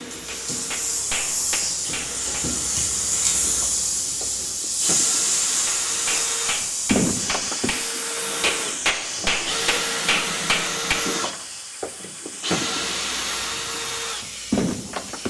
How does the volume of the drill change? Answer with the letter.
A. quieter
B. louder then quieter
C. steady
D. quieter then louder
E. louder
E.